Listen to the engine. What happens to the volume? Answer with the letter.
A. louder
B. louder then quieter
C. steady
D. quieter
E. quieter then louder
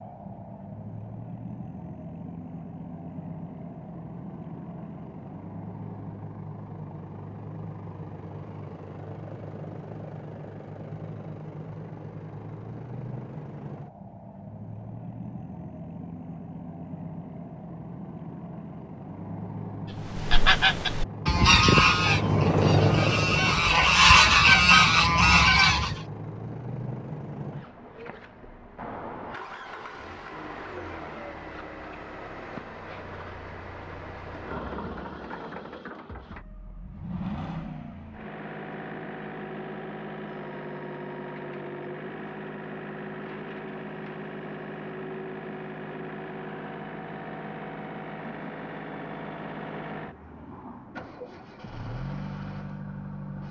B.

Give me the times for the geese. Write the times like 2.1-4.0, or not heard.
20.1-25.9.